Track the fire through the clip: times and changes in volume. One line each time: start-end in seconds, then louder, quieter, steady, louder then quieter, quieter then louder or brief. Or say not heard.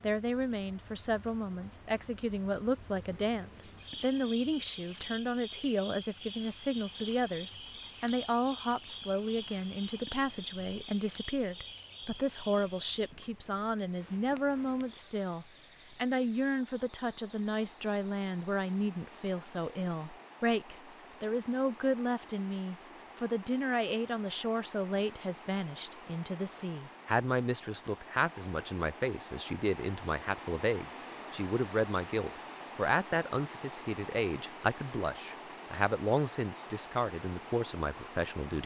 not heard.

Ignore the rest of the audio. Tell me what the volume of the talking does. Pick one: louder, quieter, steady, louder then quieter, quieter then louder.
steady.